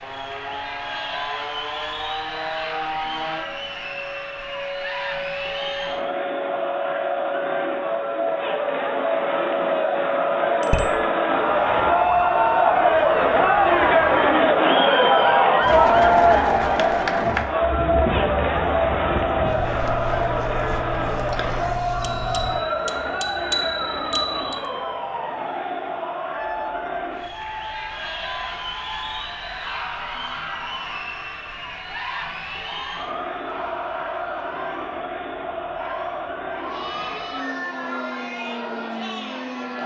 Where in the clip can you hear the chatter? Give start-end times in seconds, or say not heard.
0.0-39.8.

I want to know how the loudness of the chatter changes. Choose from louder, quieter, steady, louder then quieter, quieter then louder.
louder then quieter.